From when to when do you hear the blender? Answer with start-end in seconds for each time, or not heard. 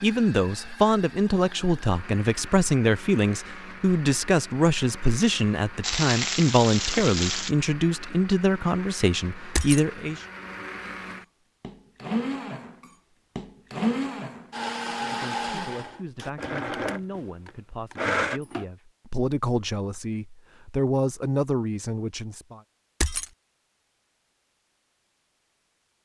0.0-18.6.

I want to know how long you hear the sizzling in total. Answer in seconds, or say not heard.
2 s.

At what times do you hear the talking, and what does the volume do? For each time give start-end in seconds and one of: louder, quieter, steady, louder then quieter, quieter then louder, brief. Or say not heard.
0.0-10.2 steady
14.8-22.6 louder.